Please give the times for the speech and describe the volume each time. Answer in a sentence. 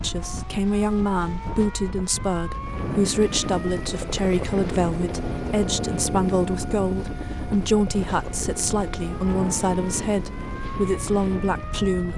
The speech can be heard from 0.0 to 12.1 s, at a steady volume.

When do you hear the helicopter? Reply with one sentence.
The helicopter can be heard from 2.5 to 12.1 s.